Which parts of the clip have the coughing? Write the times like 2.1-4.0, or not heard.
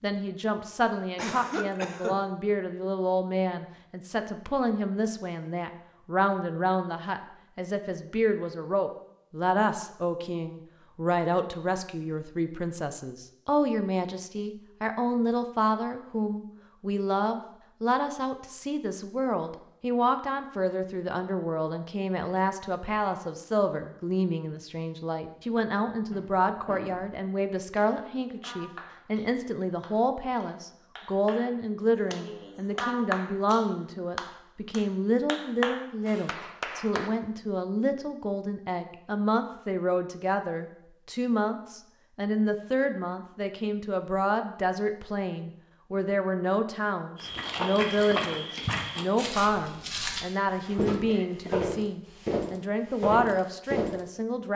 1.1-2.1, 26.1-27.1, 51.0-51.7.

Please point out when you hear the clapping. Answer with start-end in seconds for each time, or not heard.
27.6-37.1.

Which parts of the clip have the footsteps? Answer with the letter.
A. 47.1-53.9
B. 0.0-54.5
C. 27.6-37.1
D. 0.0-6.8
A.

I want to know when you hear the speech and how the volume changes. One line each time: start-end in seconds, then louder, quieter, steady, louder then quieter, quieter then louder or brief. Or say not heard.
0.0-54.5 steady.